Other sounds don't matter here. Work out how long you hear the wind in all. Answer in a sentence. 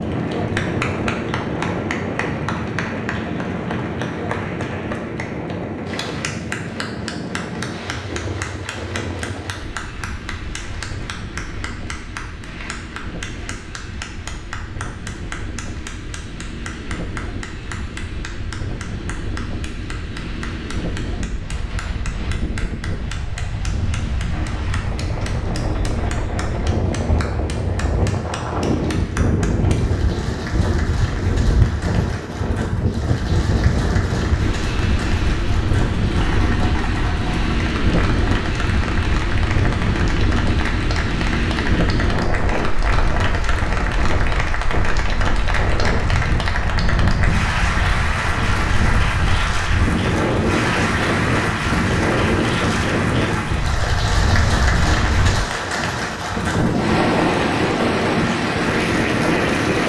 The wind can be heard for 60 seconds in total.